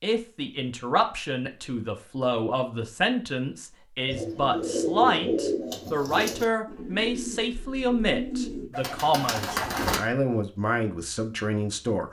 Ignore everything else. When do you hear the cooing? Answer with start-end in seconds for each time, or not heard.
4.0-10.0.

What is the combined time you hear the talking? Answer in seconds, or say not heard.
12 s.